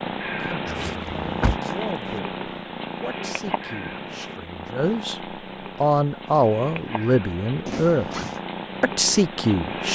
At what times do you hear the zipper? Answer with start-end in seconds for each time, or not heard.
0.7-1.7, 7.7-8.4.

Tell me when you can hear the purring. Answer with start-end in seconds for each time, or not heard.
0.0-9.9.